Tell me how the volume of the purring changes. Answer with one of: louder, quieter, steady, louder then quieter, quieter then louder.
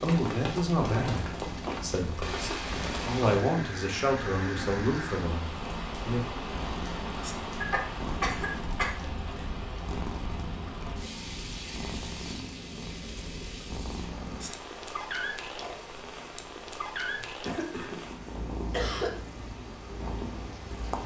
steady.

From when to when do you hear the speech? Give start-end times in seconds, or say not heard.
0.0-6.4.